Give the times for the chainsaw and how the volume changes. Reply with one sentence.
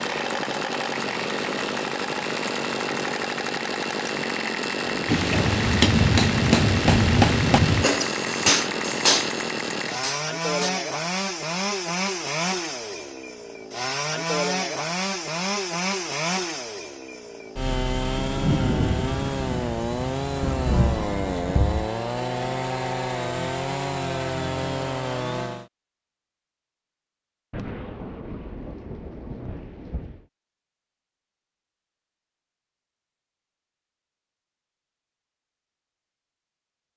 The chainsaw can be heard from 0.0 to 25.7 s, at a steady volume.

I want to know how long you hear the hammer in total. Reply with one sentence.
The hammer can be heard for 6 seconds in total.